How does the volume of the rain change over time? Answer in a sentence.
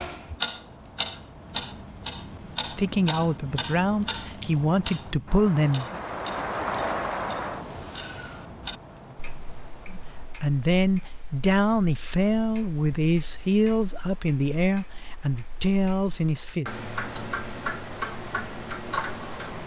The loudness of the rain goes up, then down.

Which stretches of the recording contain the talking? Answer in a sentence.
The talking can be heard from 2.5 to 6.0 s and from 9.9 to 16.8 s.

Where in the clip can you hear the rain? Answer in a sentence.
The rain can be heard from 0.0 to 10.6 s.